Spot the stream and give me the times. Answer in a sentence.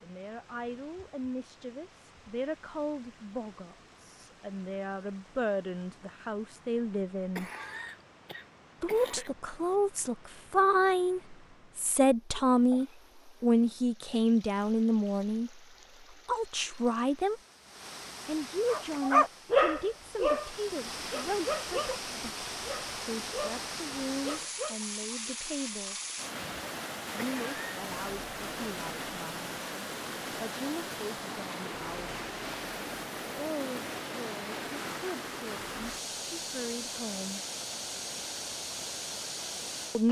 The stream can be heard from 0.0 to 40.0 s.